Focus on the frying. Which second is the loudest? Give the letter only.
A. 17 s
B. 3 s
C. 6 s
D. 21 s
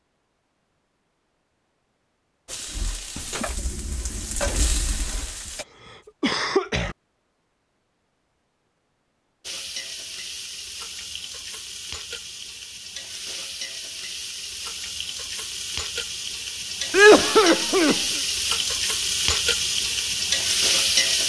D.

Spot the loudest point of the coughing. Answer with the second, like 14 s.
17 s.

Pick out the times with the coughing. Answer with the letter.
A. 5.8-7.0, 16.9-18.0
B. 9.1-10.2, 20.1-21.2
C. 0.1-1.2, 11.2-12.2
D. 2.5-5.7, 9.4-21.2
A.